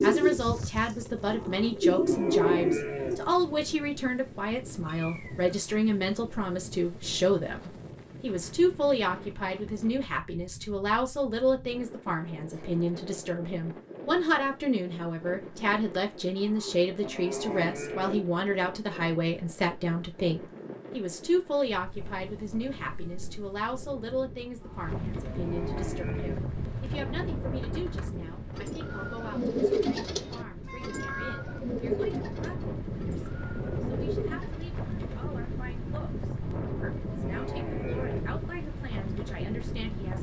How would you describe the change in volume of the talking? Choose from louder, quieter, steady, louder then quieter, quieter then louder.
quieter.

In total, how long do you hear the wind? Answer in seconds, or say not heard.
40 s.